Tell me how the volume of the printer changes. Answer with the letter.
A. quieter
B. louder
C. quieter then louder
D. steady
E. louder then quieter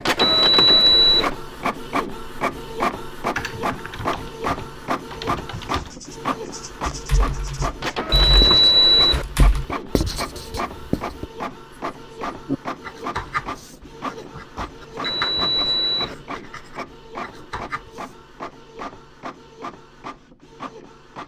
A.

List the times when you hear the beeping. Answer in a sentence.
The beeping can be heard from 0.1 to 1.3 s, from 8.1 to 9.2 s and from 15.0 to 16.1 s.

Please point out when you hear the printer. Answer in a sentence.
The printer can be heard from 0.0 to 21.2 s.